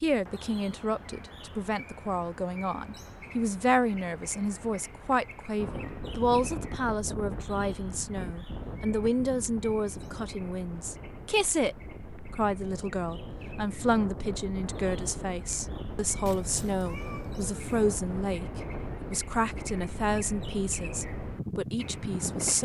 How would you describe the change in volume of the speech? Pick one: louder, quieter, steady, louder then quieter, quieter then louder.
steady.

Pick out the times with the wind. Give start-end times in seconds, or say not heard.
5.5-22.6.